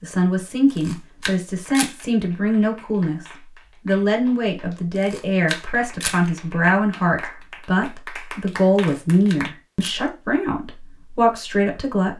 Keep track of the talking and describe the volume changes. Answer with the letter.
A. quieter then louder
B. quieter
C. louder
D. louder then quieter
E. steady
E.